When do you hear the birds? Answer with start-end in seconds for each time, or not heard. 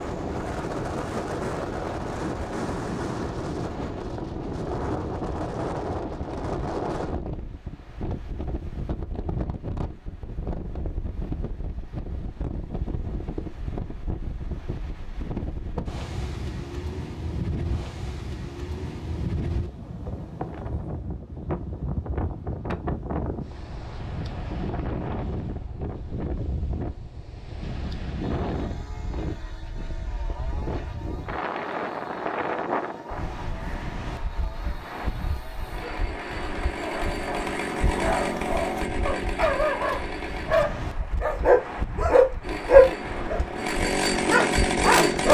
not heard.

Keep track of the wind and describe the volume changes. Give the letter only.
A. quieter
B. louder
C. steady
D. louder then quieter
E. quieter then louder
A.